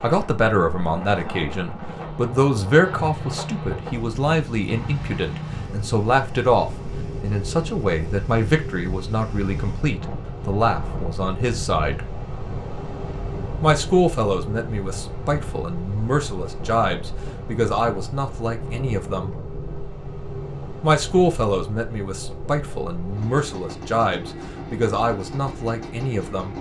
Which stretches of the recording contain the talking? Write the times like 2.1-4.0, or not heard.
0.0-12.1, 13.6-19.3, 20.8-26.5.